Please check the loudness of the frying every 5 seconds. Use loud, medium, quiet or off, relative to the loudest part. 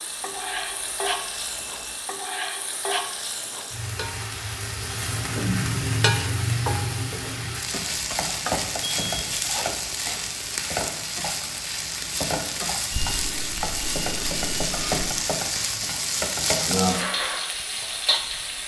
medium, loud, loud, loud.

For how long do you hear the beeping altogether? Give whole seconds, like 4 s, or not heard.
5 s.